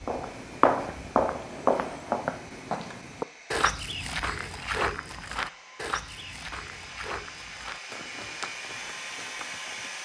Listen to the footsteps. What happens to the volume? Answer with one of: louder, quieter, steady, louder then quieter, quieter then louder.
quieter.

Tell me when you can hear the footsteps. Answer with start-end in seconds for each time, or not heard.
0.0-9.9.